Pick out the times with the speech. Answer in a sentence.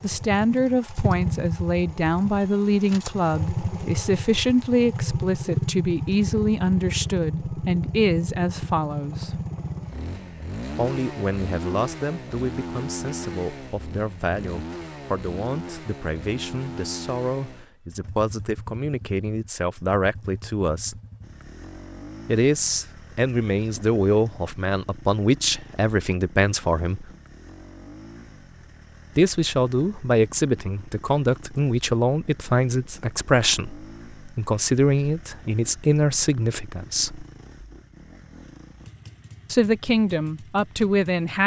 The speech can be heard from 0.0 to 9.4 s, from 10.8 to 20.9 s, from 22.2 to 27.1 s, from 29.1 to 37.2 s and from 39.5 to 41.4 s.